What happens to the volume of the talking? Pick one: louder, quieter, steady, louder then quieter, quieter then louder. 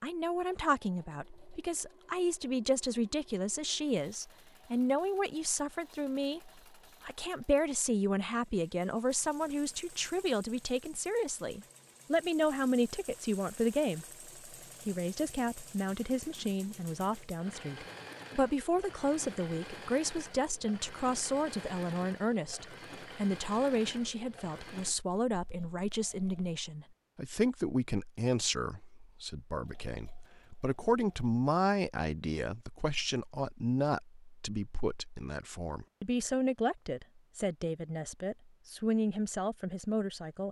steady.